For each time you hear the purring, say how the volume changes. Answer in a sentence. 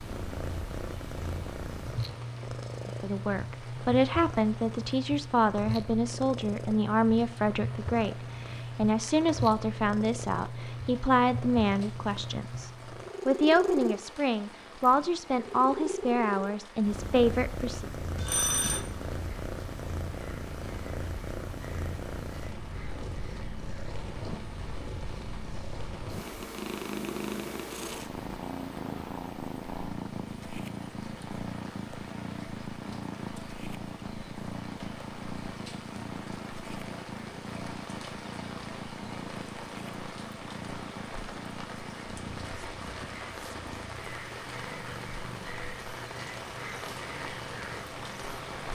You can hear the purring from 0.0 to 48.7 s, getting quieter.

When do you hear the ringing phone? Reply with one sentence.
The ringing phone can be heard from 18.1 to 18.9 s.